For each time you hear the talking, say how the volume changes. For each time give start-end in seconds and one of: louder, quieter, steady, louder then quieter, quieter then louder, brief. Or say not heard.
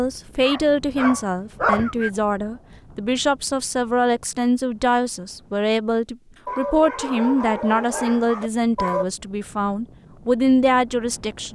0.0-11.5 steady.